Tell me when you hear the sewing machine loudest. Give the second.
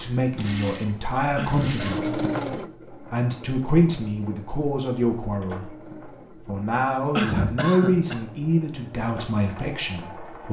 2 s.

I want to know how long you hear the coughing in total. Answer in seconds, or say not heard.
2 s.